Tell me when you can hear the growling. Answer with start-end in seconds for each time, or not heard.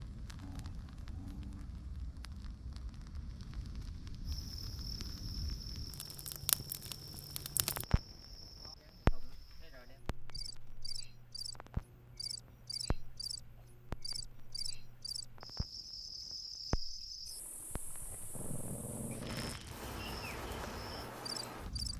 0.4-1.7, 18.3-19.6.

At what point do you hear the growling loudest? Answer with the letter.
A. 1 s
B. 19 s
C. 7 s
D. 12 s
B.